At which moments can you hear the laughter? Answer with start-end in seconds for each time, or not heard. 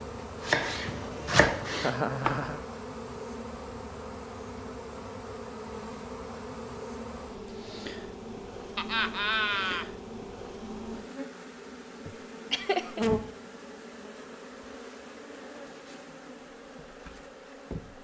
1.8-2.6, 8.8-9.8, 12.1-13.1.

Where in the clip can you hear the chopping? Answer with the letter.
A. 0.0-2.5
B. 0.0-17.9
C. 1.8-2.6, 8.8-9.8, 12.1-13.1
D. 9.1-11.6
A.